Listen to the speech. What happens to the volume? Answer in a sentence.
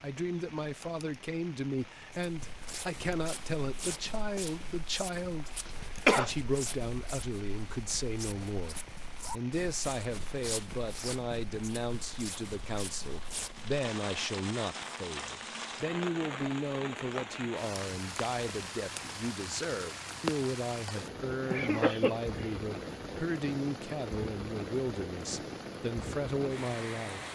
The volume of the speech stays about the same.